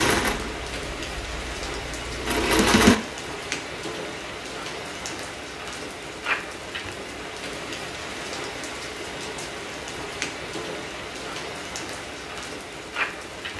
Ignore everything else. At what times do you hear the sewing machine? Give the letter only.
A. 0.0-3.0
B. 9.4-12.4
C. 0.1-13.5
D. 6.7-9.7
A.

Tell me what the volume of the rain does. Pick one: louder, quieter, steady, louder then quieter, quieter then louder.
steady.